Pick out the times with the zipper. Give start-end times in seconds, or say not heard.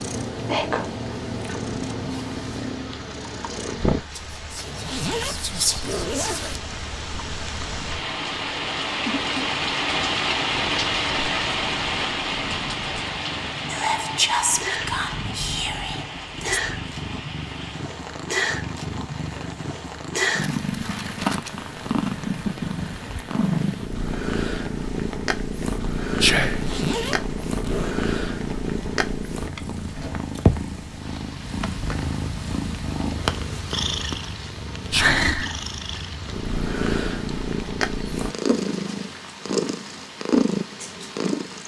4.5-6.6, 26.4-27.9.